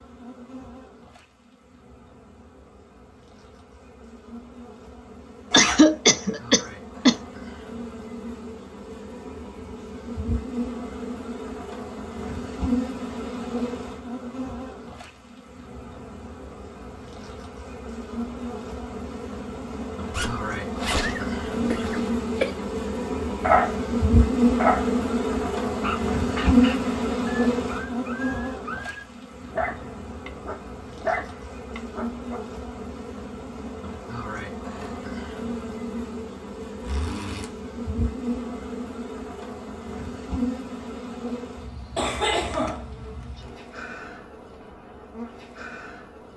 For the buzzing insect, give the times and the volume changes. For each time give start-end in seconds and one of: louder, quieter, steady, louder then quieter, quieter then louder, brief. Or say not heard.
0.0-46.3 louder then quieter.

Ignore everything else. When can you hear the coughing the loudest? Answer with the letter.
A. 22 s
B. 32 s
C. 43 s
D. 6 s
D.